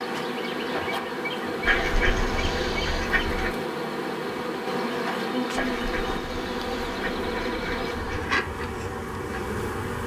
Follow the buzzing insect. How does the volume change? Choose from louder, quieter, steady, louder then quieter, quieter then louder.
steady.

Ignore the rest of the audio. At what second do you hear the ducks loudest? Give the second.
2 s.